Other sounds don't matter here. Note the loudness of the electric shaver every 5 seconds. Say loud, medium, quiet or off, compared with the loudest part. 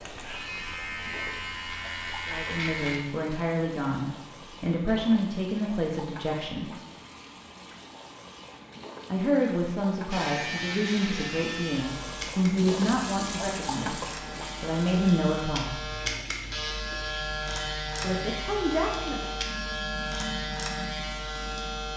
loud, off, loud, loud, loud.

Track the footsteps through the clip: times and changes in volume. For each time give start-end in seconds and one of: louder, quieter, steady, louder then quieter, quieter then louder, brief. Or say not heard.
not heard.